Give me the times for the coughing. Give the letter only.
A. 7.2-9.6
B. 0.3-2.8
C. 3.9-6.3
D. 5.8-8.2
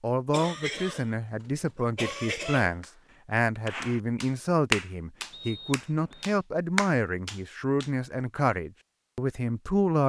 B.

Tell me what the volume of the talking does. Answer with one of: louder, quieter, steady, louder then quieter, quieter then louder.
steady.